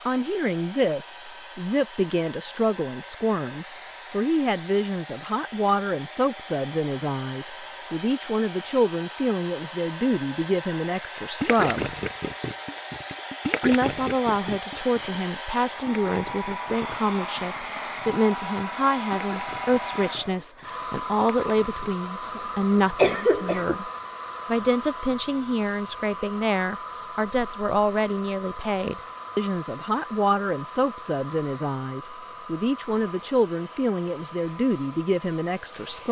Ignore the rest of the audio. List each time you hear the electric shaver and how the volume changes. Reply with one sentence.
You can't hear the electric shaver here.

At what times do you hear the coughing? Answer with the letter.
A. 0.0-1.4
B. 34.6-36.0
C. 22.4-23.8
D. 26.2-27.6
C.